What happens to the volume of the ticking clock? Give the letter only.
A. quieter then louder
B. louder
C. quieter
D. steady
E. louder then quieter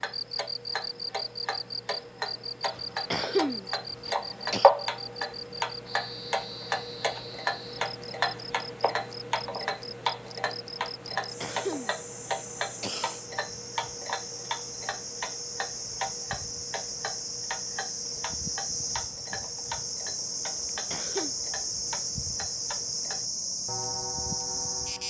C.